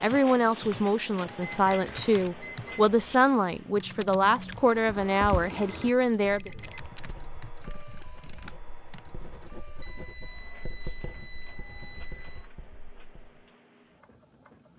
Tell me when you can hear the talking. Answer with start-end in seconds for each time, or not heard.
0.0-6.5.